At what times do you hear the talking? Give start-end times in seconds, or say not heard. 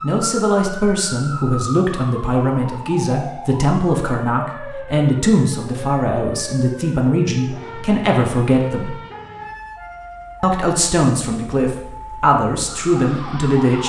0.0-8.9, 10.4-13.8.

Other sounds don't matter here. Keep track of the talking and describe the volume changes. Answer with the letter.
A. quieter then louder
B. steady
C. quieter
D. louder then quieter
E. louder
B.